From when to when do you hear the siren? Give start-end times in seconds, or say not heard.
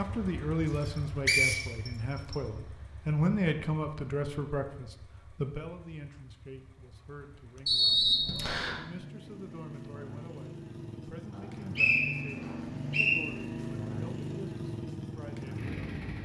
not heard.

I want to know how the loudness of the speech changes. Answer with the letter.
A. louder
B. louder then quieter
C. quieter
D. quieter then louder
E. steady
C.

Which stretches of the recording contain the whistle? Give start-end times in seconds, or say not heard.
0.8-2.4, 7.7-8.8, 11.3-13.2.